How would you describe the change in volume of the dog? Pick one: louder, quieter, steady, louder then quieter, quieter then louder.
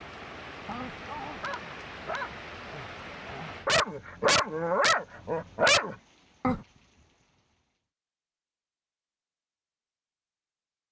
louder.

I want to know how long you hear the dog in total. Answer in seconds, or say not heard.
6 s.